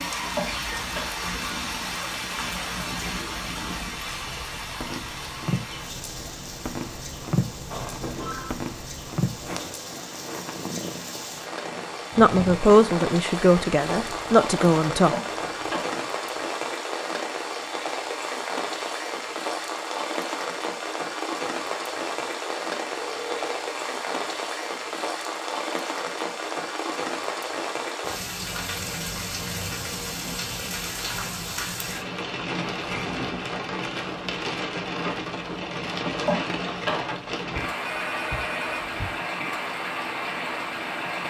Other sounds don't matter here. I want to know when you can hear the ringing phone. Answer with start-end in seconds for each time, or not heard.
7.7-8.6, 22.9-23.6, 37.5-39.2.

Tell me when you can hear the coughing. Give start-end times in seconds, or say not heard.
0.3-1.1, 15.1-16.1, 36.2-37.2.